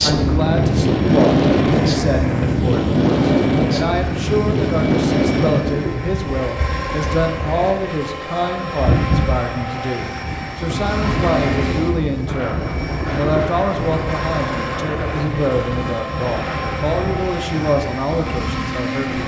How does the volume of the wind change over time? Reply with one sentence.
The loudness of the wind goes down.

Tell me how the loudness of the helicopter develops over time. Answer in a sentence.
The volume of the helicopter stays about the same.